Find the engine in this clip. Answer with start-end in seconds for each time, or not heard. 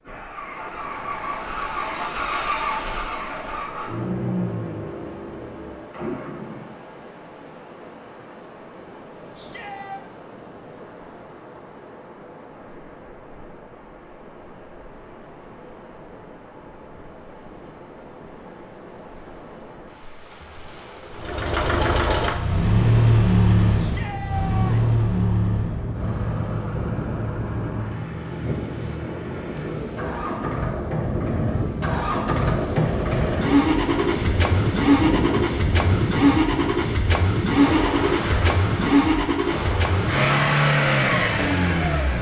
0.0-6.7, 21.1-42.1.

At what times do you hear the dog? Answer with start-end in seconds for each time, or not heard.
not heard.